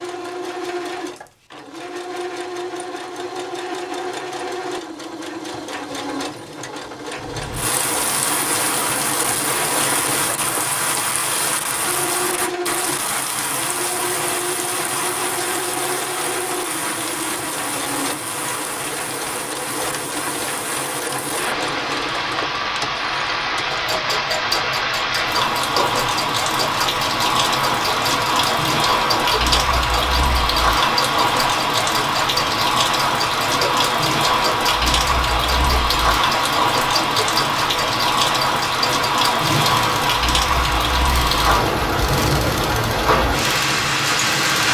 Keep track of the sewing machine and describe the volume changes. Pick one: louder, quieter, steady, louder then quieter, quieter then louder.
steady.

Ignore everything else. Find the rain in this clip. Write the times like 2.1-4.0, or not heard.
7.2-44.6.